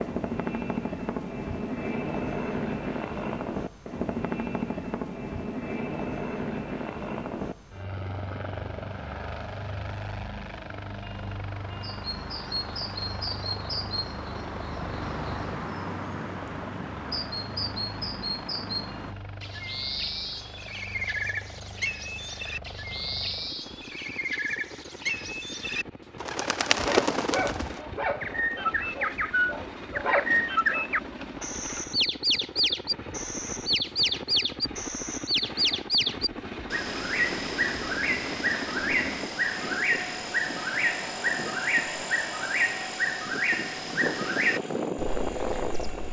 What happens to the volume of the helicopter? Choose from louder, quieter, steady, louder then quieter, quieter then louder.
quieter then louder.